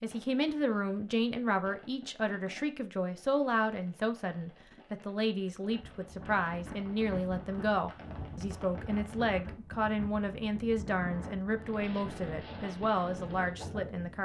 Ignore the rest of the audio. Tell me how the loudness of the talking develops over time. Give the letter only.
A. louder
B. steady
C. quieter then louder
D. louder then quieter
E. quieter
B.